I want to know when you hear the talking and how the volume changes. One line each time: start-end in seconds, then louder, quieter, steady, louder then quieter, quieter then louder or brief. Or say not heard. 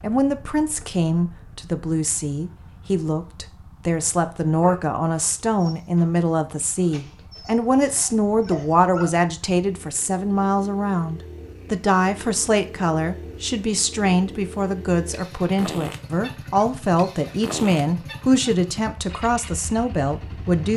0.0-20.7 steady.